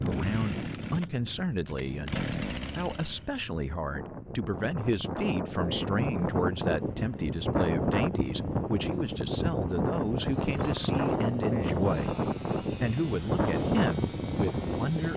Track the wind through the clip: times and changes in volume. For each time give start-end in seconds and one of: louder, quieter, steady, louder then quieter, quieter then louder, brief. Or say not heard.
0.0-15.1 louder.